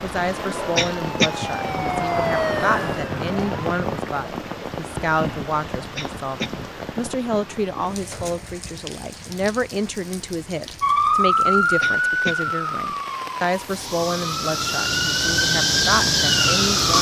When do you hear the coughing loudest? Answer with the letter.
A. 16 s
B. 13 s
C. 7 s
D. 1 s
D.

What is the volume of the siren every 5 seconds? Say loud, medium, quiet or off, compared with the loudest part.
medium, off, loud, loud.